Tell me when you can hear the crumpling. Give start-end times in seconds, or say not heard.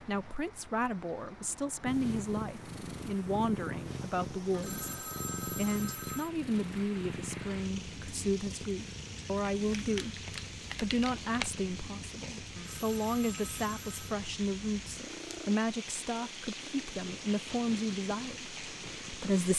9.5-11.5.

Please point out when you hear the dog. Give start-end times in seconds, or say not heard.
not heard.